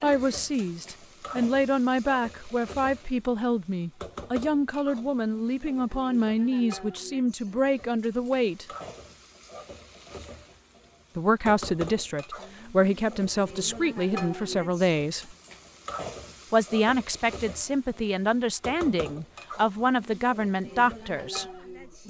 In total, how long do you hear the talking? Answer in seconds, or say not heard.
18 s.